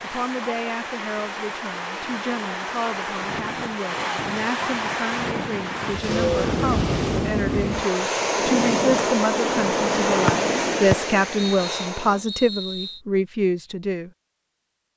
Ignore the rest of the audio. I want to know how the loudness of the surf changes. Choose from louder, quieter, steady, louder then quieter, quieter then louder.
louder.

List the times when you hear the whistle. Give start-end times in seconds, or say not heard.
10.2-13.0.